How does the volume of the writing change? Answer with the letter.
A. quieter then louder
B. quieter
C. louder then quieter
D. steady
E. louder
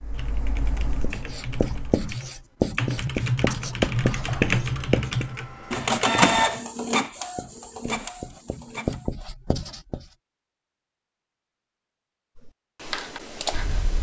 A.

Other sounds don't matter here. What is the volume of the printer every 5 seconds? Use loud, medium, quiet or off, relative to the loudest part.
quiet, loud, off.